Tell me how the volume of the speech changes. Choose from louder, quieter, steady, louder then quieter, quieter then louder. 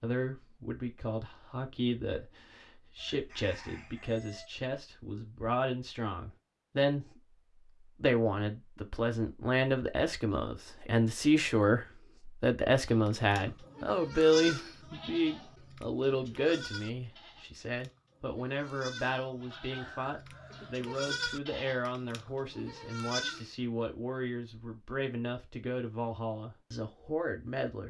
louder then quieter.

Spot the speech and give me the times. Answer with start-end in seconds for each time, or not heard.
0.0-7.0, 8.0-27.8.